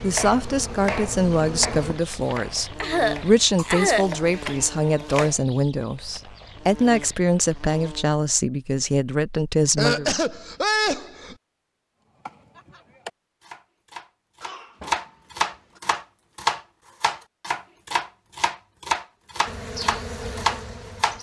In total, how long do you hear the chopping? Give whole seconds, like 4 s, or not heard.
14 s.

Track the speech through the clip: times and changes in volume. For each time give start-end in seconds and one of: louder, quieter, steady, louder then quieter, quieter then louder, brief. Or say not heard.
0.0-10.1 steady.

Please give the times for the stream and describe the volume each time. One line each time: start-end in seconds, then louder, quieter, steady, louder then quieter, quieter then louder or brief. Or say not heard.
not heard.